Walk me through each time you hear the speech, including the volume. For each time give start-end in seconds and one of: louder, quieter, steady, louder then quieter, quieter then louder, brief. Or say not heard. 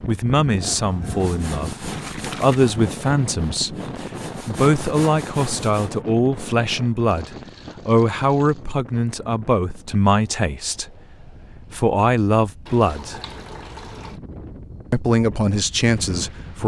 0.1-13.2 steady
14.9-16.6 brief.